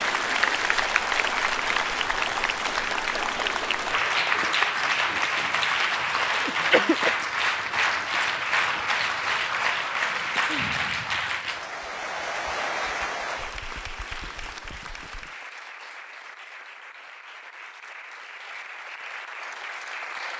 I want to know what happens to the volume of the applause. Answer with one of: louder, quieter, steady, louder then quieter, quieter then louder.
quieter.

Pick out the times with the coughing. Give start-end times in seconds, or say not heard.
6.2-7.2.